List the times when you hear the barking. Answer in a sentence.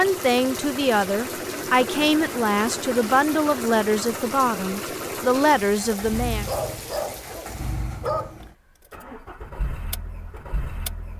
The barking can be heard from 5.9 to 8.3 s.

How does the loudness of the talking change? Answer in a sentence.
The volume of the talking stays about the same.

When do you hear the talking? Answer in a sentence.
You can hear the talking from 0.0 to 6.5 s.